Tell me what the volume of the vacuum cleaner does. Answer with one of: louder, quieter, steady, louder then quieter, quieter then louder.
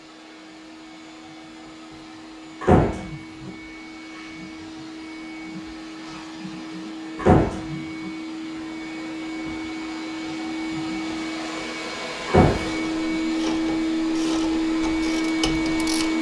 louder.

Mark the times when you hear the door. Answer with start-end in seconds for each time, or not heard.
2.6-3.5, 7.2-7.7, 12.2-13.2.